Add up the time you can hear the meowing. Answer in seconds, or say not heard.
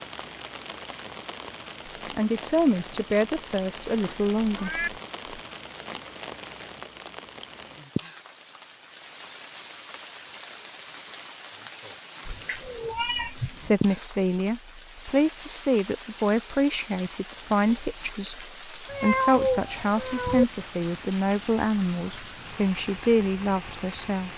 4 s.